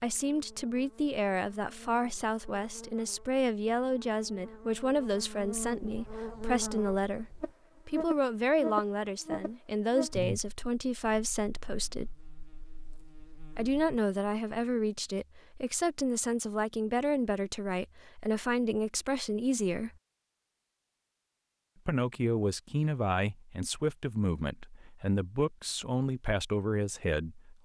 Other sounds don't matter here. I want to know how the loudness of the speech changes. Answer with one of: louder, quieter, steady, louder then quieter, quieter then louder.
steady.